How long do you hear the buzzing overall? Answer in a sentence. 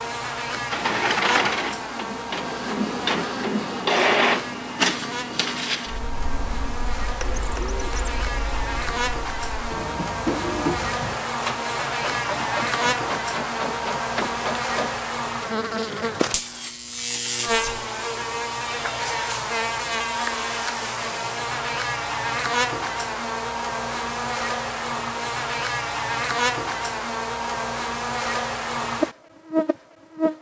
You can hear the buzzing for 30 seconds altogether.